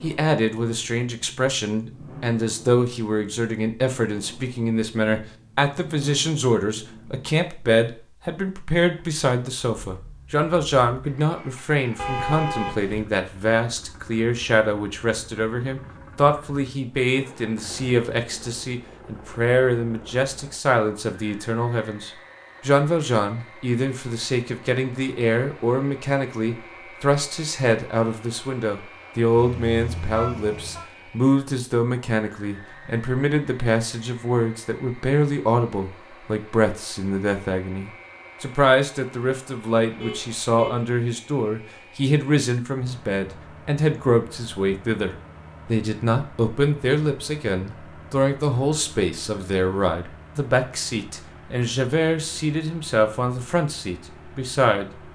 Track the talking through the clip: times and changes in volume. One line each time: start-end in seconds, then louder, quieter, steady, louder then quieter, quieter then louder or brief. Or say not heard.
0.0-54.9 steady.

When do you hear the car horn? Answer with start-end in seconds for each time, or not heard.
11.9-13.1, 29.4-30.9, 40.0-40.9.